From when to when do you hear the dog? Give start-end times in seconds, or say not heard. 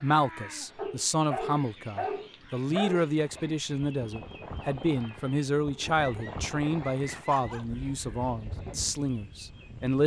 0.8-3.4, 6.0-8.0.